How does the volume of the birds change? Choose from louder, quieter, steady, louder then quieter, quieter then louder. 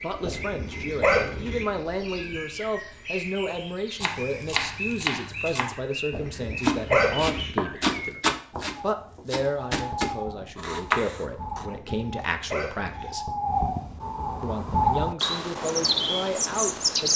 louder.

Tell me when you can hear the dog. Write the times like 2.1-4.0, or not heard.
0.2-1.6, 6.1-7.5, 11.7-13.1.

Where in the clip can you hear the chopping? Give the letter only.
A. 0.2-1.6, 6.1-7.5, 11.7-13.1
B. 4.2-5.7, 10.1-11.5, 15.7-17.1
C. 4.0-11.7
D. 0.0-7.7
C.